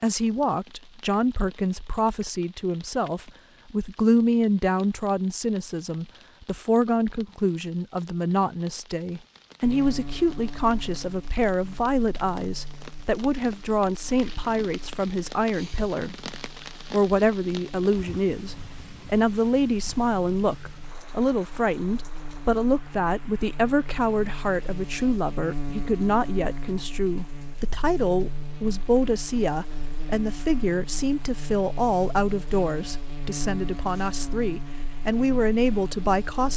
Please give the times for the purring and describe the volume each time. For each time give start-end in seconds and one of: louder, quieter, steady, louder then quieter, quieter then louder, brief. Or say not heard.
not heard.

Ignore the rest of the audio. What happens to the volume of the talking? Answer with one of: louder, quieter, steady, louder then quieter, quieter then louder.
steady.